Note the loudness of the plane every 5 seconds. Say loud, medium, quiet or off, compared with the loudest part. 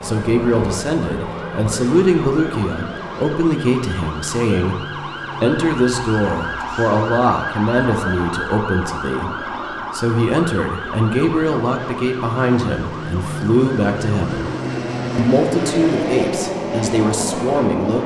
medium, quiet, medium, loud.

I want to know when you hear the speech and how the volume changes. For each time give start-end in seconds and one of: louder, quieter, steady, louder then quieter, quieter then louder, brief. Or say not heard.
0.0-14.5 steady
15.2-18.0 brief.